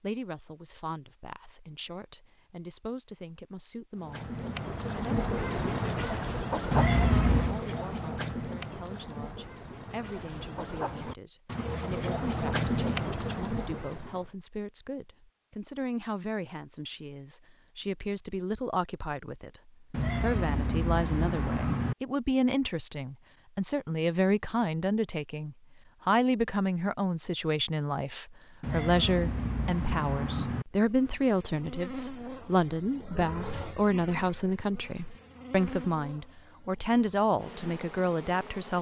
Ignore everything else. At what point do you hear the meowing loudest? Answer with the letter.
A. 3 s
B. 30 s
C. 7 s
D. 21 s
C.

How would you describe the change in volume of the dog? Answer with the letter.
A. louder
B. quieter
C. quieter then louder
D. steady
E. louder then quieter
C.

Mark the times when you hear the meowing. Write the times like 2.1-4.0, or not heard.
6.7-7.6, 19.9-21.9, 28.6-30.6.